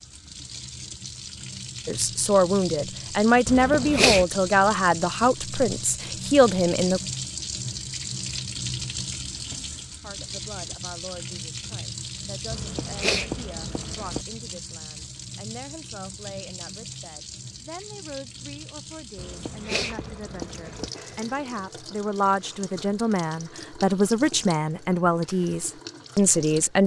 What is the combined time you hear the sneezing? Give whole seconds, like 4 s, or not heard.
4 s.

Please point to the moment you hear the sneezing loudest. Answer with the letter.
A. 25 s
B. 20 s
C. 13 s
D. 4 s
D.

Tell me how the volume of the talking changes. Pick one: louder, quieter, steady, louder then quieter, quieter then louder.
quieter then louder.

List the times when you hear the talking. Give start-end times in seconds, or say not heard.
1.9-7.0, 10.0-26.8.